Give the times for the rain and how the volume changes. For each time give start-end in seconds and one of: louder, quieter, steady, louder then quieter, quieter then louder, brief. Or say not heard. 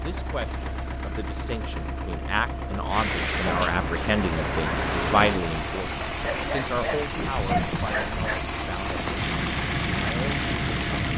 2.9-11.1 steady.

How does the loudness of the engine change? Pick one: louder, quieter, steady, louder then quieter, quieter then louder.
steady.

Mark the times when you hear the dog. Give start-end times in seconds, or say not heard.
6.0-8.4.